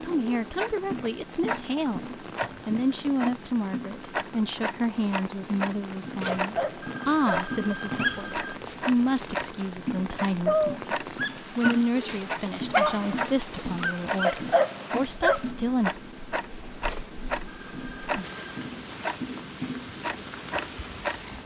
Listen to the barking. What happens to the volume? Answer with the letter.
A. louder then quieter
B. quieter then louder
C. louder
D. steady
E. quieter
B.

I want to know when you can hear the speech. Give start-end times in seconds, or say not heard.
0.0-15.9.